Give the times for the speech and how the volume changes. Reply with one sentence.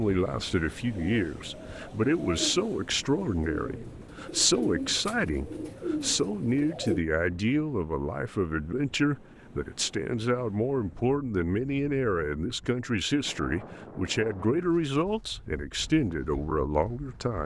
You can hear the speech from 0.0 to 17.4 s, at a steady volume.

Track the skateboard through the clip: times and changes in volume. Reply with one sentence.
The skateboard can't be heard in this clip.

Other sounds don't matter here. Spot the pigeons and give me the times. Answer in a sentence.
You can hear the pigeons from 0.8 to 7.0 s.